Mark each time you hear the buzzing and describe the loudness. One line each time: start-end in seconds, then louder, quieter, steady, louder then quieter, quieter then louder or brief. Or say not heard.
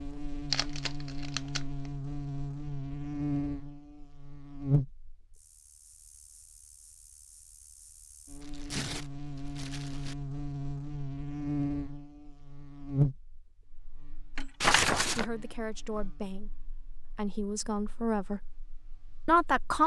0.0-19.8 quieter.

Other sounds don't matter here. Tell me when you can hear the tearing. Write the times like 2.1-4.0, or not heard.
0.5-1.9, 8.4-10.2, 14.6-15.2.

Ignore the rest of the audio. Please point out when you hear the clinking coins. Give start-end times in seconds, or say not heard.
14.3-14.9.